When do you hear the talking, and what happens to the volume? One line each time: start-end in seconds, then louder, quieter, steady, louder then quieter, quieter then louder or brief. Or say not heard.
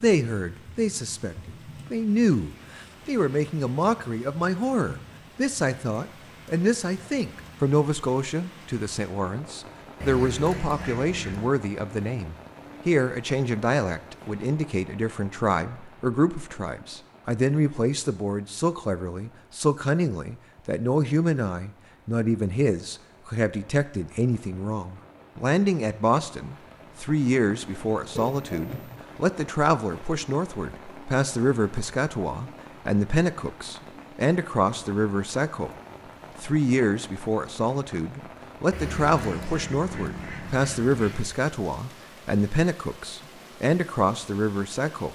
0.0-35.7 steady
36.4-45.1 steady.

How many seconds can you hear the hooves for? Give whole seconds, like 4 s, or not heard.
not heard.